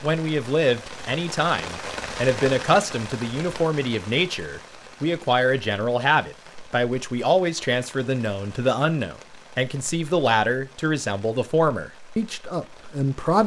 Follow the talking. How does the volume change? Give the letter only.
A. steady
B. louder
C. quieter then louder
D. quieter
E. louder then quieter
A.